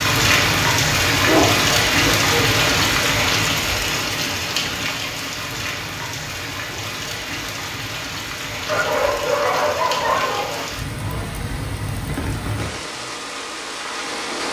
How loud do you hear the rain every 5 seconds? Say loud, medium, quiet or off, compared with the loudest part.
loud, medium, medium.